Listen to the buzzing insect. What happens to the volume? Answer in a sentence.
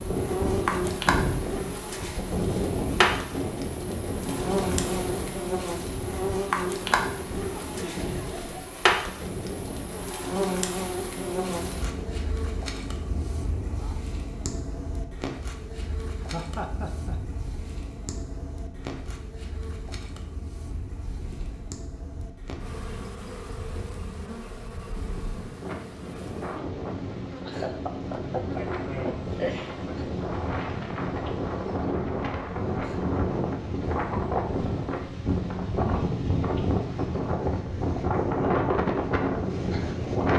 The volume of the buzzing insect goes down.